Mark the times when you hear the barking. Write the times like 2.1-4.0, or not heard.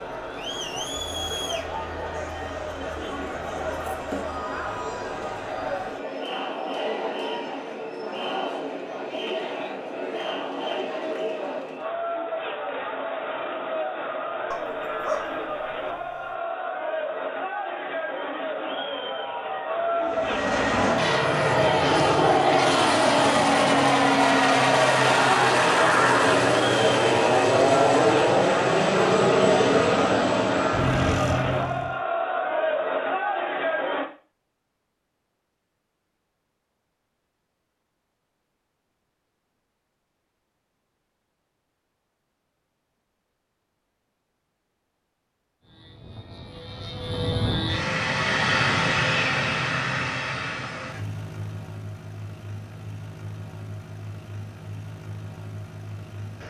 14.5-16.4.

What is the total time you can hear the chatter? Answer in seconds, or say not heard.
34 s.